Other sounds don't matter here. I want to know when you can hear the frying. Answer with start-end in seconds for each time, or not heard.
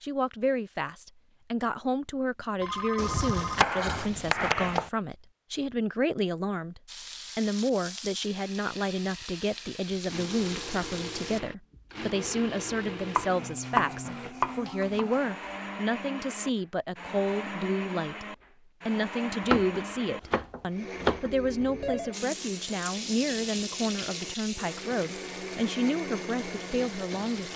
6.8-11.4, 22.1-27.5.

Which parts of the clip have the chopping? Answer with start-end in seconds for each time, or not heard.
3.0-4.9, 12.8-15.1, 19.5-21.3.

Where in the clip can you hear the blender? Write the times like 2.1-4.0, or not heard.
9.9-27.5.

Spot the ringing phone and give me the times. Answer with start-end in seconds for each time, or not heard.
2.6-3.7, 21.3-22.1.